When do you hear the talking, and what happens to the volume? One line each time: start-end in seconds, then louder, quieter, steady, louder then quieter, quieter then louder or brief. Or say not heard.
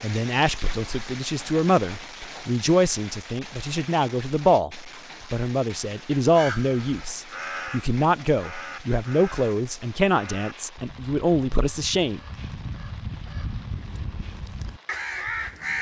0.0-12.2 steady.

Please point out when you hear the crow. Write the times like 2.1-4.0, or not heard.
6.3-15.7.